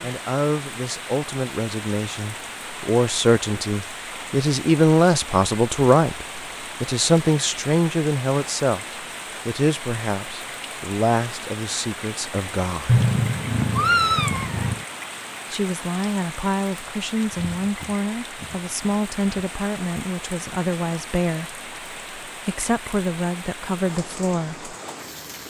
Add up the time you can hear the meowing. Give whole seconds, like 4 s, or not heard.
2 s.